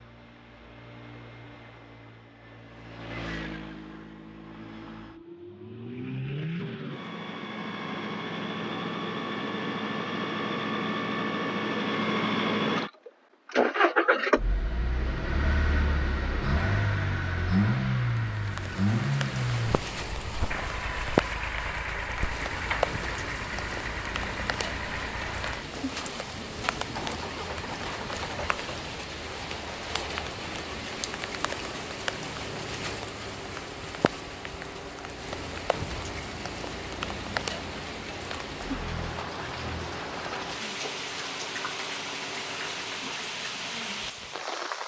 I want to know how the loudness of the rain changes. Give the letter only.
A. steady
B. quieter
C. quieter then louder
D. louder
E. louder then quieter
A.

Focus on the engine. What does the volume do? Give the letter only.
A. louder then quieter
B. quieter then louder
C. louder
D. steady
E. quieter
A.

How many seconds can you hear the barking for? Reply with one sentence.
You can't hear the barking here.